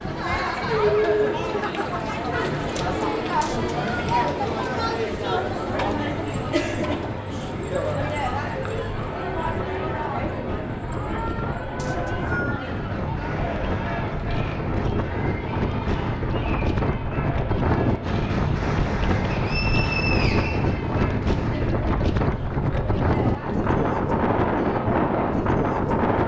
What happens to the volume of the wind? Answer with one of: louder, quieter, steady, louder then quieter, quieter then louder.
louder.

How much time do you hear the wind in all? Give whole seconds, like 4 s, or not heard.
26 s.